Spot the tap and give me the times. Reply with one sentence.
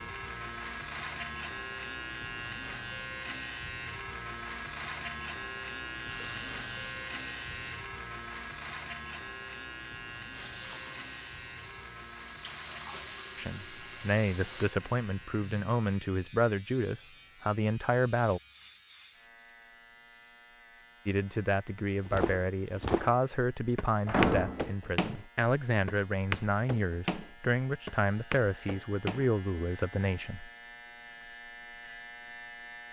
The tap can be heard from 6.0 to 7.8 s and from 10.3 to 14.8 s.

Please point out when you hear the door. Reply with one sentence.
You can hear the door from 24.1 to 24.7 s.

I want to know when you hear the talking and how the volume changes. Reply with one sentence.
The talking can be heard from 13.3 to 18.4 s, at a steady volume; and from 21.1 to 30.5 s, at a steady volume.